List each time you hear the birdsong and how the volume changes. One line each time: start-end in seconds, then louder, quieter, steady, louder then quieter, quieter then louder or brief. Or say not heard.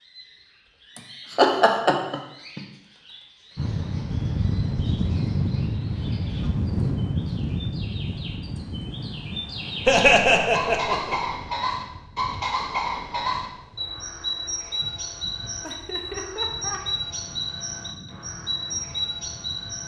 0.0-19.8 louder.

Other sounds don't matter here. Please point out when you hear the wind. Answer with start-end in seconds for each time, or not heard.
3.5-19.8.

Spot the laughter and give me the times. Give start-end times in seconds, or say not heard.
0.9-2.6, 9.8-11.2, 15.6-16.8.